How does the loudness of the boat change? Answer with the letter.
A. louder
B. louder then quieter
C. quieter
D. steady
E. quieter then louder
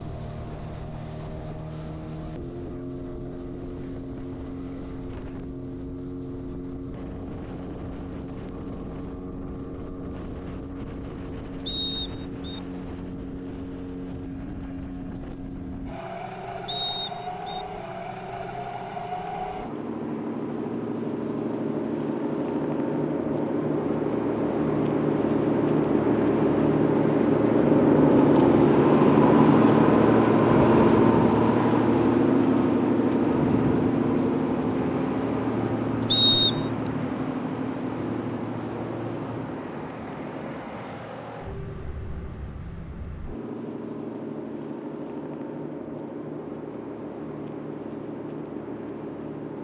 B.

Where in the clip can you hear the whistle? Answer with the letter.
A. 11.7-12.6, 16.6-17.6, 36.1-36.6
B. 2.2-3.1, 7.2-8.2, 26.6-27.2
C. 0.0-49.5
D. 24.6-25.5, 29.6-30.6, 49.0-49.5
A.